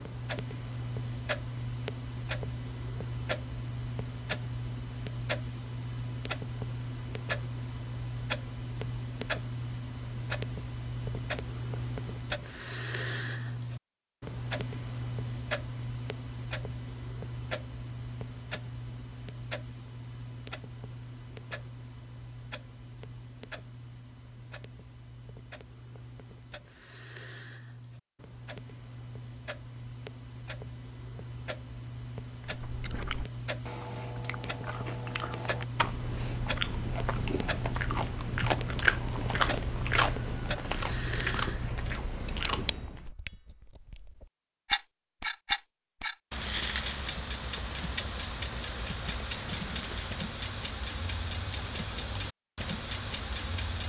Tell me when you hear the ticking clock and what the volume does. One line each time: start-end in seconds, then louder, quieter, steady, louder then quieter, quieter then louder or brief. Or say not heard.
0.0-53.8 quieter then louder.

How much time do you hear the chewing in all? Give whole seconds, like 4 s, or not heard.
11 s.